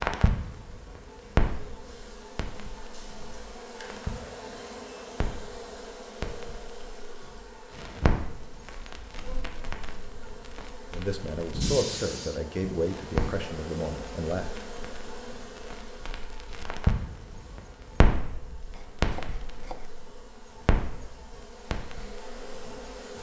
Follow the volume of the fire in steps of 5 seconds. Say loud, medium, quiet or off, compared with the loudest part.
loud, medium, loud, loud, medium.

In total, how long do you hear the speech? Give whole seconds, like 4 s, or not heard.
4 s.